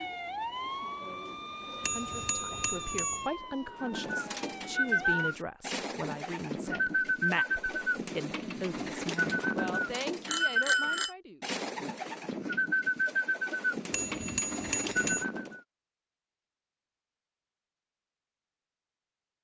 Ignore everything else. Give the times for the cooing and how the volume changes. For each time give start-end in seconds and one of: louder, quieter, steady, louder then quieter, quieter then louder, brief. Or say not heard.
3.8-15.6 steady.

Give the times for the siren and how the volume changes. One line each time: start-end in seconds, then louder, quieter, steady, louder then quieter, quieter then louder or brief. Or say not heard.
0.0-5.3 quieter.